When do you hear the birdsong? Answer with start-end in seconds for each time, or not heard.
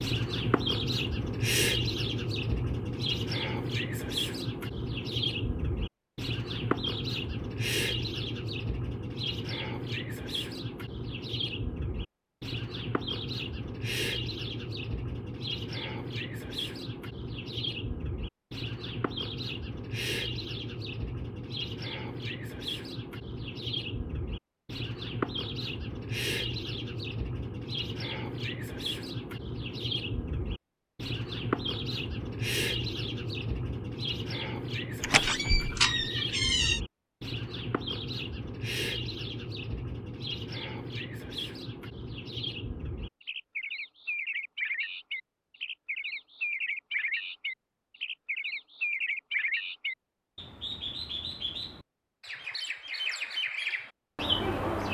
0.0-54.9.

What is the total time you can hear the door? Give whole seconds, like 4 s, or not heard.
2 s.